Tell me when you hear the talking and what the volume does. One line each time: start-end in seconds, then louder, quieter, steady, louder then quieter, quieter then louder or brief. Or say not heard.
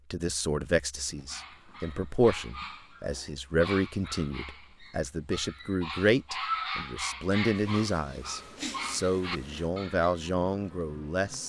0.1-11.4 steady.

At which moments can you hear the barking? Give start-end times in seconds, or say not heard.
1.1-10.3.